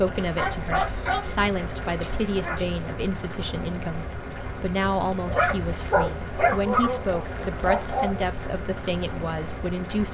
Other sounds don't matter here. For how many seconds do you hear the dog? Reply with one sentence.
The dog can be heard for 5 seconds in total.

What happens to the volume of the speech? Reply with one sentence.
The loudness of the speech stays about the same.